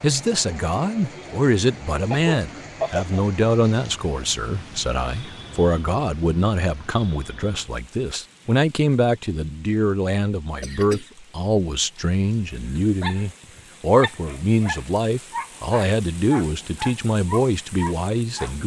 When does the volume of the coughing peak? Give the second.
3 s.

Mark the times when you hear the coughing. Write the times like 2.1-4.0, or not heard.
2.1-3.0, 10.6-11.1.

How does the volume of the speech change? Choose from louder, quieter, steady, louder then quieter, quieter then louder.
steady.